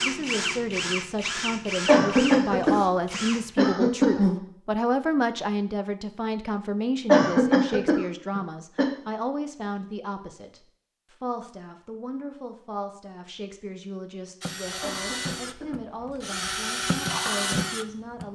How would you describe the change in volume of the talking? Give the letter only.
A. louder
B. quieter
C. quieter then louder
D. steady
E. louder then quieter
B.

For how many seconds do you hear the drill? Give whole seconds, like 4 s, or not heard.
8 s.